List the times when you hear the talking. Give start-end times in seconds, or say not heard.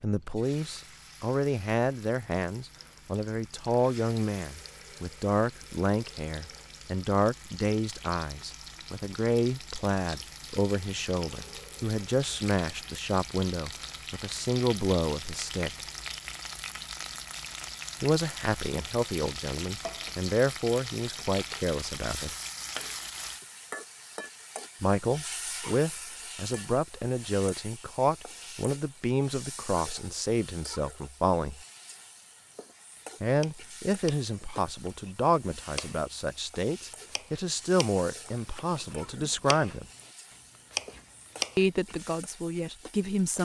0.0-15.7, 18.0-22.4, 24.8-31.6, 33.2-39.9, 41.5-43.4.